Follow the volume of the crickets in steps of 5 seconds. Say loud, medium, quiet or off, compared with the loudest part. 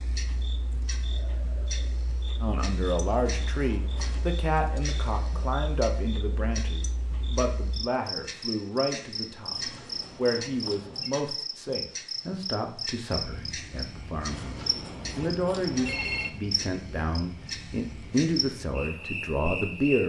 medium, loud, loud, loud.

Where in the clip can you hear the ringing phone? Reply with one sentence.
You can hear the ringing phone from 2.9 to 4.4 s, from 9.4 to 11.2 s and from 14.3 to 16.3 s.